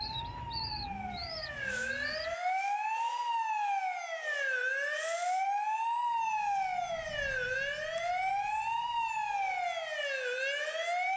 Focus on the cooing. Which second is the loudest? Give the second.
1 s.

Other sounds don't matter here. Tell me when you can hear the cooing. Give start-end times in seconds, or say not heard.
0.0-2.4.